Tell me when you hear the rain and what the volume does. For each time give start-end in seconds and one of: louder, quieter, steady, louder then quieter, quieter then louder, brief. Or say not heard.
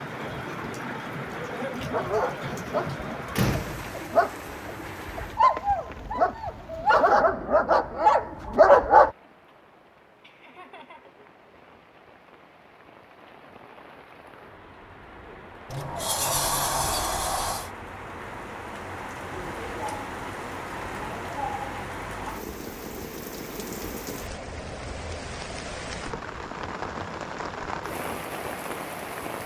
0.0-29.4 quieter then louder.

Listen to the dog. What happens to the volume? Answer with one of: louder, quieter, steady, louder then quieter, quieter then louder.
louder.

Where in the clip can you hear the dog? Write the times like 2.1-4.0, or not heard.
1.4-9.1.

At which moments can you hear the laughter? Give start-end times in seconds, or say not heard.
10.2-11.2.